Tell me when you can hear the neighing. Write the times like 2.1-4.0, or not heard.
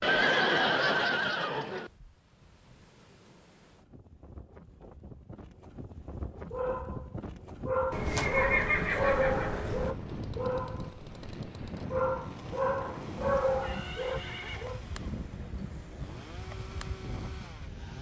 0.0-1.9, 7.9-9.9, 13.5-14.7.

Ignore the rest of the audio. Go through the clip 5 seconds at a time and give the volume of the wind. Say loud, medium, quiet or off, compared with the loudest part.
quiet, loud, loud, loud.